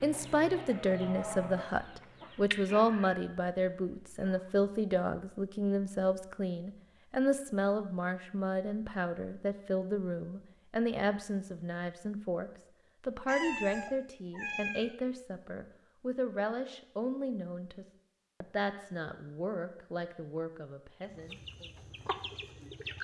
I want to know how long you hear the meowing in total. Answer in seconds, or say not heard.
2 s.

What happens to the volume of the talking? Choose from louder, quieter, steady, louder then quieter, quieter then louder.
quieter.